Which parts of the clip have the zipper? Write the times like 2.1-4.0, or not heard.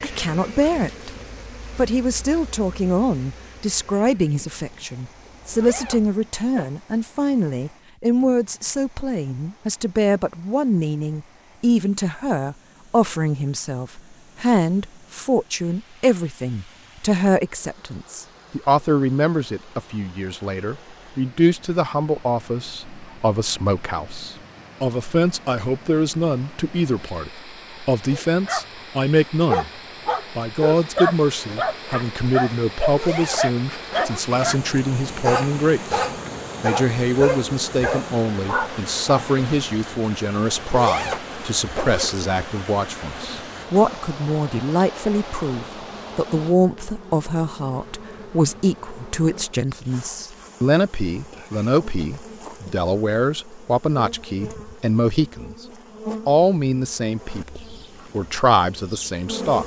5.2-6.7, 32.9-34.2, 40.6-42.2.